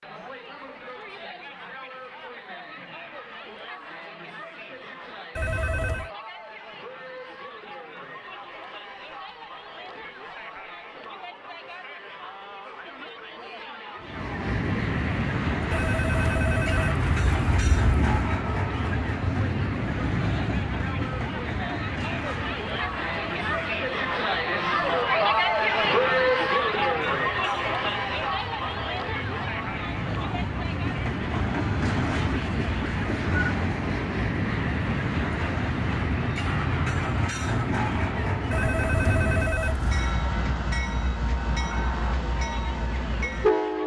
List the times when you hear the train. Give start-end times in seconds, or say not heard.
14.0-43.8.